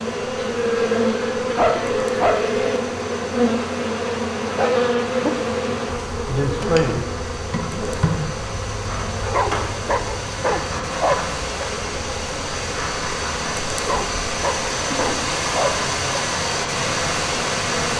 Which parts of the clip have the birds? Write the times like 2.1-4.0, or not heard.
not heard.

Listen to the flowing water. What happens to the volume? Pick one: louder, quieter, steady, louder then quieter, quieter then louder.
louder.